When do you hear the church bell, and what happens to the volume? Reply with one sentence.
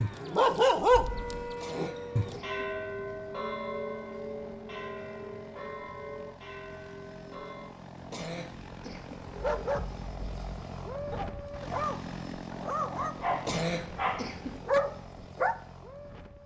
The church bell can be heard from 1.1 to 7.7 s, getting quieter.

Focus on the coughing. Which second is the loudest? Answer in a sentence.
The loudest moment of the coughing is at 14 seconds.